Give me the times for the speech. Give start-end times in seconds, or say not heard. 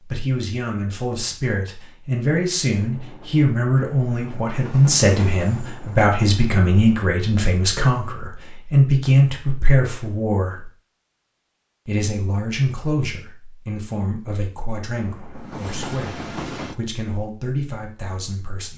0.1-10.7, 11.8-18.7.